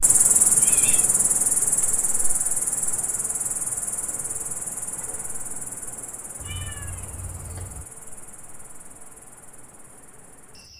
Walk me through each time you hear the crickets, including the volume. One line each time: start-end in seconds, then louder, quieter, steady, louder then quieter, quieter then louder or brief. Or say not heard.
0.0-10.7 quieter.